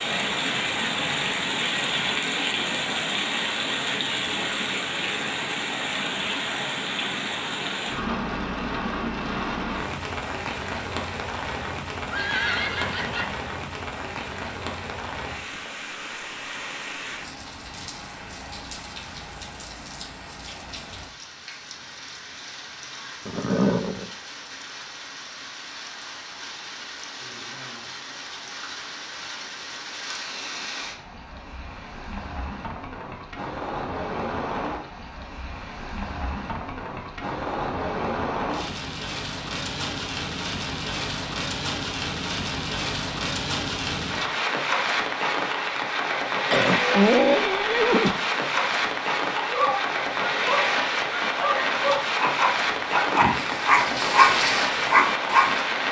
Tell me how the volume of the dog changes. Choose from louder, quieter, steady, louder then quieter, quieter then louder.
louder.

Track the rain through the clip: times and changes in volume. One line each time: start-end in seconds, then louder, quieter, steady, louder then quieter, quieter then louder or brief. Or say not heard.
0.0-55.8 quieter then louder.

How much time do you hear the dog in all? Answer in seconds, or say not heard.
6 s.